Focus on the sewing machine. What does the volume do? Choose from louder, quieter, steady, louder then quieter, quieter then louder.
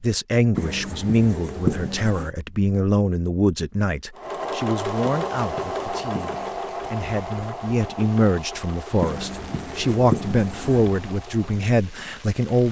quieter.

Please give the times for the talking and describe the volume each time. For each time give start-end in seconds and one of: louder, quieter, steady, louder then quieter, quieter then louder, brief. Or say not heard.
0.0-12.6 quieter then louder.